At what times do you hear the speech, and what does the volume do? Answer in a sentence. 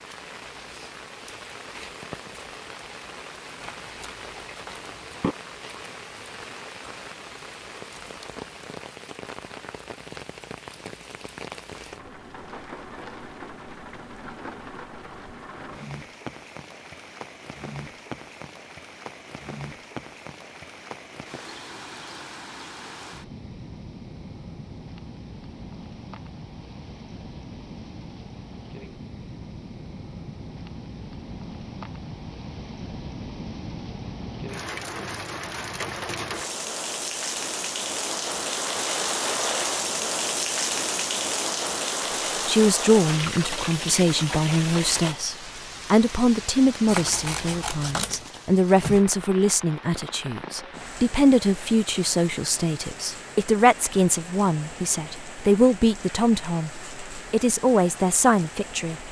You can hear the speech from 42.5 to 59.0 s, at a steady volume.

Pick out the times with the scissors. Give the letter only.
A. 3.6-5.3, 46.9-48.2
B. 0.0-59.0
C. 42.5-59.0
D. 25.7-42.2
A.